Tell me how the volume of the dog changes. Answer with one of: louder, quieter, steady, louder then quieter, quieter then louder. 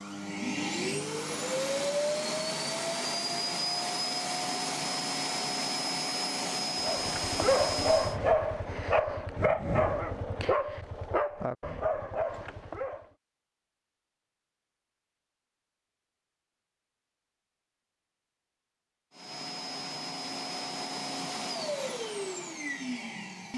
quieter.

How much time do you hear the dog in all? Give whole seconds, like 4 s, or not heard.
6 s.